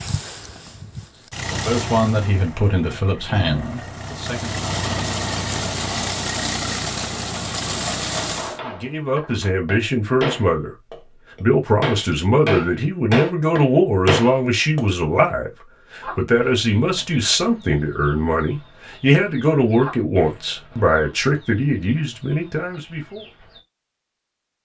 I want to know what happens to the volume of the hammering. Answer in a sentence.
The volume of the hammering goes up.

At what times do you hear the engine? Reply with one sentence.
You can hear the engine from 0.0 to 8.6 s.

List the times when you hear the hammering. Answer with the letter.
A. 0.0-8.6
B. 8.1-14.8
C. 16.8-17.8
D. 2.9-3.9
B.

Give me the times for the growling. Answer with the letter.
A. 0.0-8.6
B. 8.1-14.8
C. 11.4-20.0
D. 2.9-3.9
D.